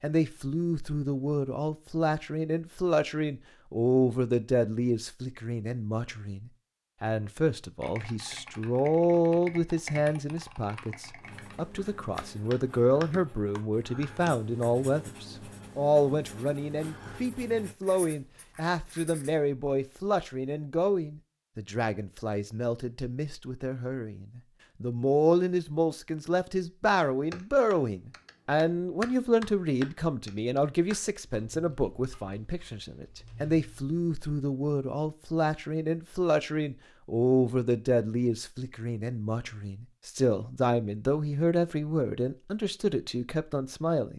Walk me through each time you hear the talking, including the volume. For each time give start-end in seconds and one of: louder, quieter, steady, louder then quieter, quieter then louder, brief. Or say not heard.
0.0-44.1 steady.